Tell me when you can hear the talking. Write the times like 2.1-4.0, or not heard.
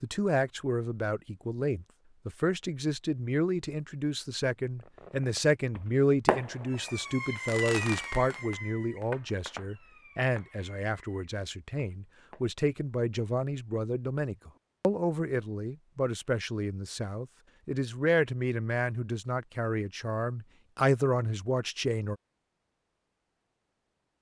0.0-22.1.